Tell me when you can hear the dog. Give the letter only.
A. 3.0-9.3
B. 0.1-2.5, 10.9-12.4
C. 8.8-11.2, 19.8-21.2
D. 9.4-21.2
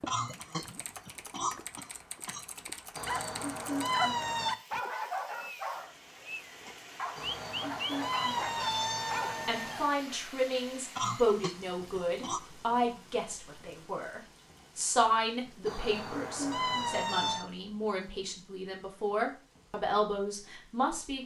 A.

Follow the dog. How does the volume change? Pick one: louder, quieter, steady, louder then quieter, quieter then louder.
quieter then louder.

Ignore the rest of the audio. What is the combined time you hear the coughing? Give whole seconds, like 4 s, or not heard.
4 s.